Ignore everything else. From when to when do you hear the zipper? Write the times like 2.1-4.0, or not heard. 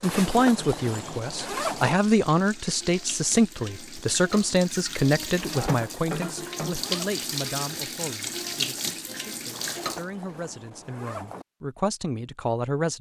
0.0-1.9, 5.3-7.1, 9.5-11.4.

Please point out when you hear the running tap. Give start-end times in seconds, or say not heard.
0.0-10.1.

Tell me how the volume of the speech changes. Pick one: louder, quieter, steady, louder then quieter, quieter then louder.
quieter then louder.